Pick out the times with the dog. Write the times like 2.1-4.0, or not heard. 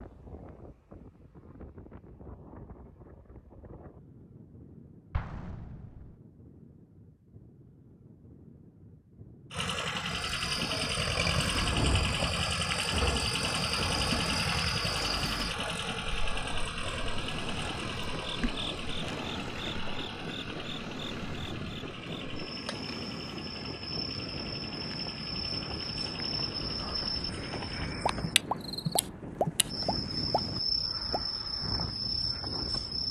not heard.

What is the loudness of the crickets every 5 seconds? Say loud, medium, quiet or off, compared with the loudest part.
off, off, loud, medium, medium, loud, loud.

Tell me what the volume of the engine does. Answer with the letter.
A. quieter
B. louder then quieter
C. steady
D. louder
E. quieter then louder
A.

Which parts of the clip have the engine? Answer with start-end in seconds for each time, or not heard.
9.5-27.9.